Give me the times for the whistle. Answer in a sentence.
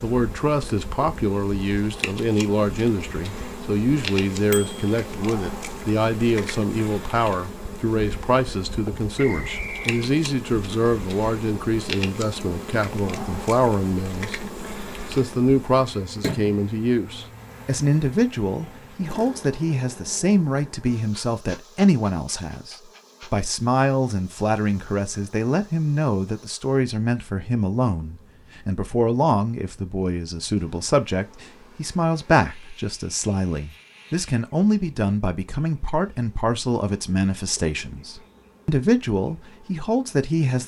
You can hear the whistle from 9.2 to 10.0 s.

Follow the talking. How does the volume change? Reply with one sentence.
The volume of the talking stays about the same.